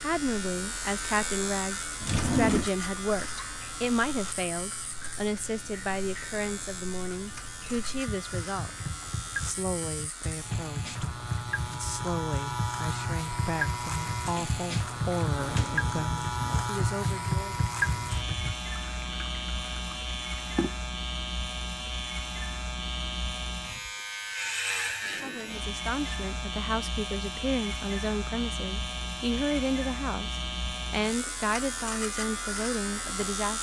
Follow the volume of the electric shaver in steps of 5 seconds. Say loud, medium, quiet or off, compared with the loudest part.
loud, medium, loud, loud, loud, loud, loud.